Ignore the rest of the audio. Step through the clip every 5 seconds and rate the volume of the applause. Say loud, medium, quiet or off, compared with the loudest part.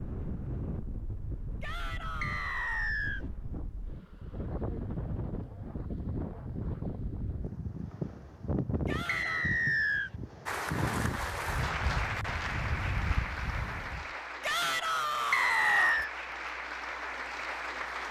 off, off, loud, loud.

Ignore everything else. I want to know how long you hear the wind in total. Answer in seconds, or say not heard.
14 s.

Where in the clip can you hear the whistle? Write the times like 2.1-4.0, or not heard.
2.2-3.2, 9.1-10.1, 15.3-16.1.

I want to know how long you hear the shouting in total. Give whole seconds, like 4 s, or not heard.
4 s.